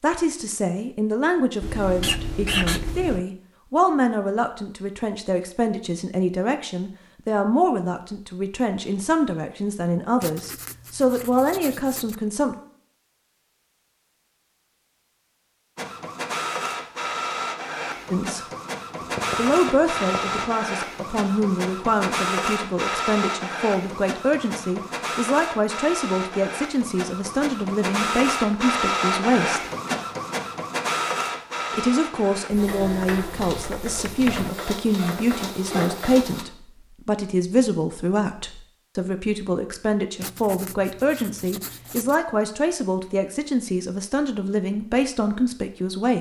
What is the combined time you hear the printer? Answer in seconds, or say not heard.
21 s.